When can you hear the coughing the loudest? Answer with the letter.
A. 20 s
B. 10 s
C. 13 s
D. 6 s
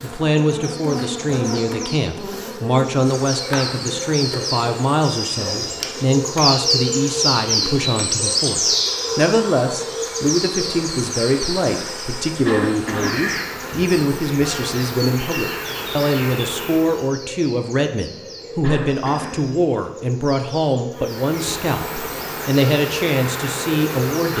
C.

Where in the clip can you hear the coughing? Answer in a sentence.
The coughing can be heard from 5.3 to 6.1 s, from 12.4 to 13.2 s and from 18.6 to 19.5 s.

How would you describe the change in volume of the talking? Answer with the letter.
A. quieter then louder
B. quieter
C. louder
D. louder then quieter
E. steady
E.